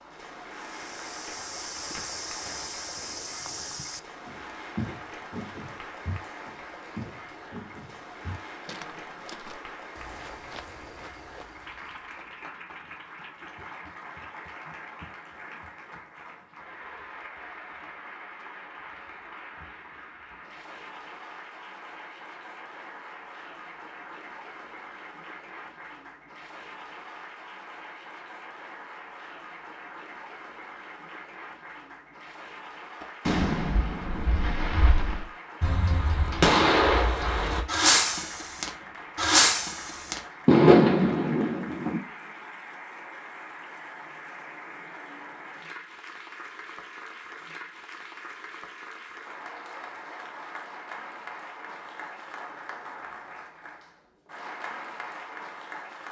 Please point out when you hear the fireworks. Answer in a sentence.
The fireworks can be heard from 33.2 to 42.0 s.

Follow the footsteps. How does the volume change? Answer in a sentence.
The loudness of the footsteps goes down.